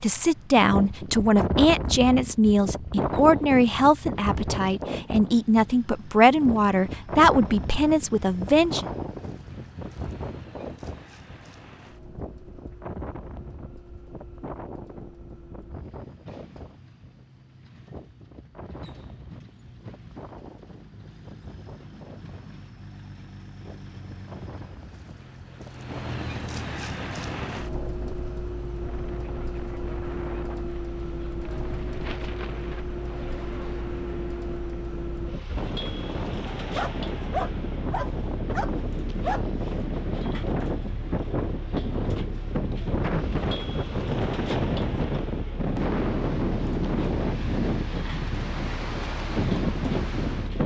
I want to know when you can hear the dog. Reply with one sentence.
The dog can be heard from 36.7 to 39.5 s.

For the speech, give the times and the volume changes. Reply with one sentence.
The speech can be heard from 0.0 to 8.8 s, at a steady volume.